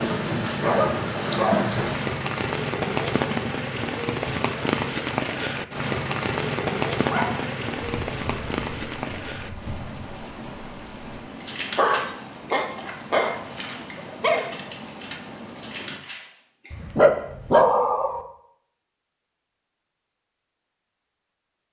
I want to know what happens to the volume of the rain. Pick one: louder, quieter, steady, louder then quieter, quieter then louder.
quieter.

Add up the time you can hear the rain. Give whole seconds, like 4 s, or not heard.
16 s.